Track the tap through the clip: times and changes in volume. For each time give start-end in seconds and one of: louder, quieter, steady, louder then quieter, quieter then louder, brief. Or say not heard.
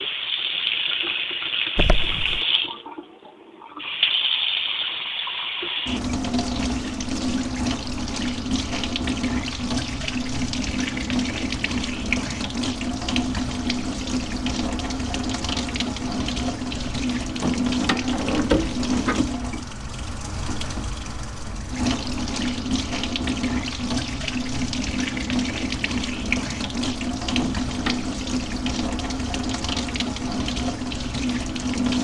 0.0-31.9 steady.